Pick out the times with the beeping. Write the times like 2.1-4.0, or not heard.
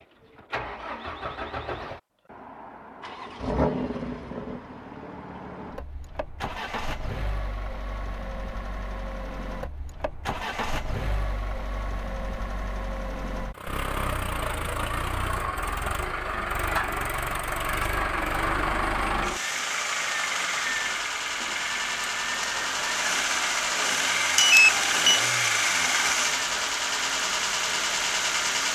24.4-25.2.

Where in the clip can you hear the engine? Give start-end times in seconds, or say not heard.
0.0-28.6.